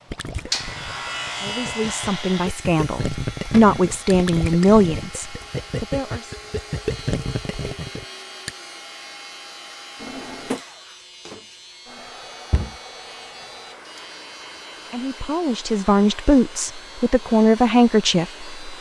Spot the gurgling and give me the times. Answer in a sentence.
You can hear the gurgling from 0.1 to 8.6 s.